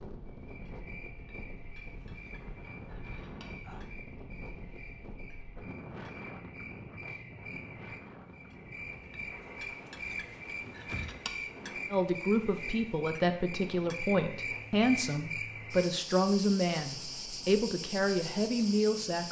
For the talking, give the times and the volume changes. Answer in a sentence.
The talking can be heard from 11.9 to 19.2 s, at a steady volume.